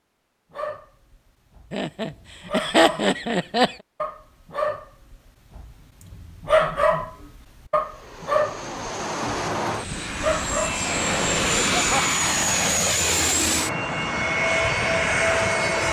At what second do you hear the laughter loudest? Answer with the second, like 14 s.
3 s.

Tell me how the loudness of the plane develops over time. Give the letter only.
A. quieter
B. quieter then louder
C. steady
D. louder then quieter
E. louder
E.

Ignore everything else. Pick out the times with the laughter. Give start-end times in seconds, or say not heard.
1.7-3.8, 11.6-12.1.